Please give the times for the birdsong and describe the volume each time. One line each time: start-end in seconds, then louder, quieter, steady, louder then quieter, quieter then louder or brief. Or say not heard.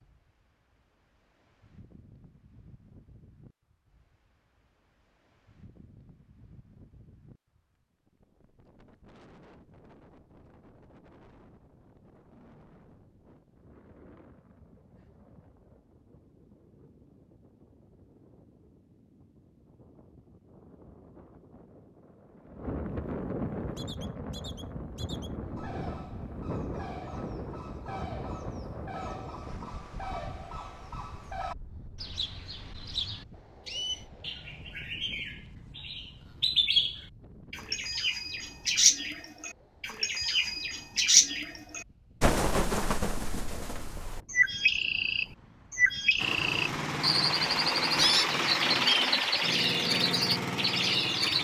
23.8-51.3 louder.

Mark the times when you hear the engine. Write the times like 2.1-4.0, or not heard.
46.1-51.3.